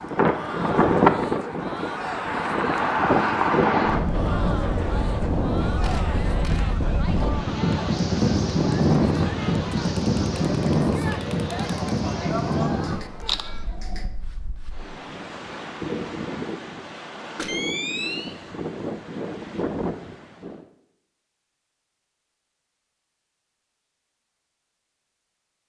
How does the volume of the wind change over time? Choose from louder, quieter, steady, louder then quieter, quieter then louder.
quieter.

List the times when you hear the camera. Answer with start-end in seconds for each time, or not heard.
5.8-6.7, 12.8-14.1, 17.4-18.4.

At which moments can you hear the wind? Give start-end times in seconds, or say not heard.
0.0-20.6.